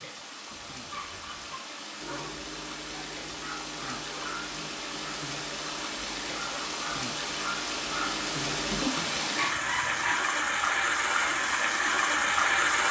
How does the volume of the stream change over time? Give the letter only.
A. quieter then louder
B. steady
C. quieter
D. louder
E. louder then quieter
D.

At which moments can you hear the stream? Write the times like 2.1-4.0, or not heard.
0.0-12.8.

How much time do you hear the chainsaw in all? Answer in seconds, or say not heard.
not heard.